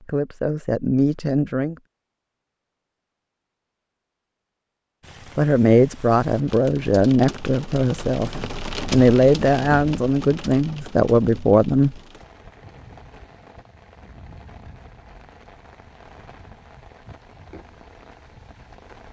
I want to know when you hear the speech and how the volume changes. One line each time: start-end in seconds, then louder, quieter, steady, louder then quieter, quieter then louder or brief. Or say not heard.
0.0-1.8 brief
5.3-11.9 steady.